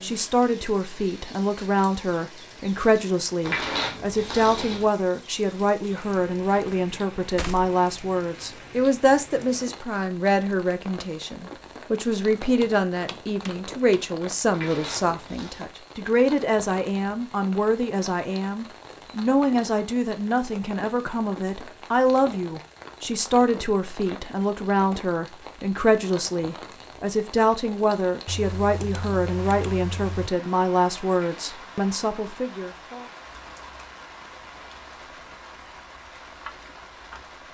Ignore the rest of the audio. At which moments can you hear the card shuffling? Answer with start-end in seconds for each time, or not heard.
3.4-4.8, 14.5-15.7, 31.1-31.8.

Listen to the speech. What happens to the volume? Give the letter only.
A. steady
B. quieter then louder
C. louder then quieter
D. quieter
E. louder
A.